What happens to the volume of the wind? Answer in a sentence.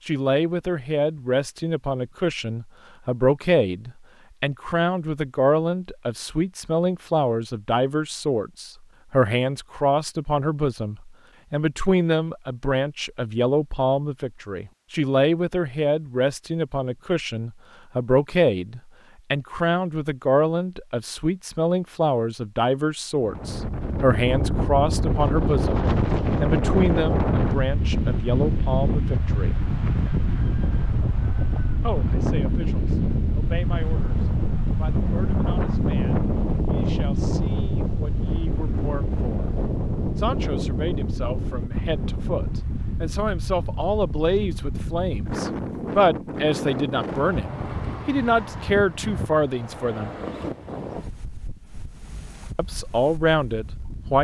The loudness of the wind goes down.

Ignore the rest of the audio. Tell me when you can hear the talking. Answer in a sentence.
You can hear the talking from 0.1 to 29.6 s, from 31.8 to 39.5 s, from 40.1 to 50.1 s and from 52.5 to 54.1 s.